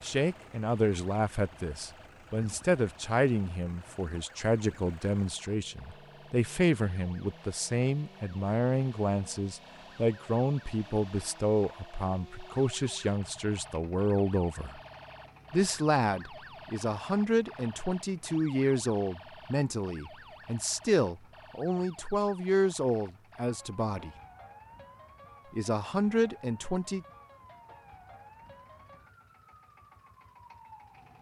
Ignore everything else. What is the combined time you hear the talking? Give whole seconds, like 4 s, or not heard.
25 s.